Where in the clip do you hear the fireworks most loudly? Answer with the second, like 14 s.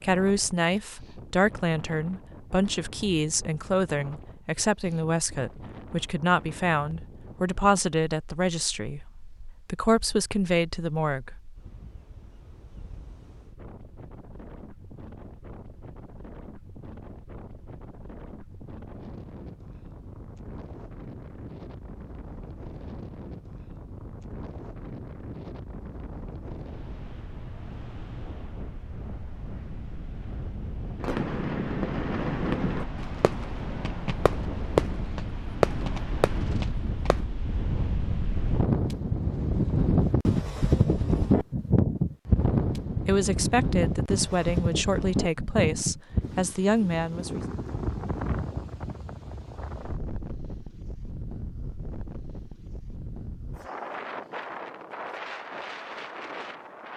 35 s.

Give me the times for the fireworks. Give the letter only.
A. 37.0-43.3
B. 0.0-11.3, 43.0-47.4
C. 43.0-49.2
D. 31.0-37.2
D.